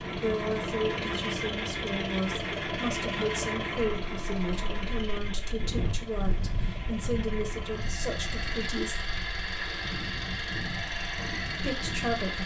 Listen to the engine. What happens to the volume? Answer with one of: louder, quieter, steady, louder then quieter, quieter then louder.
quieter then louder.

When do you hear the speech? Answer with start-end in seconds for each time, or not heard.
0.1-9.1, 11.6-12.4.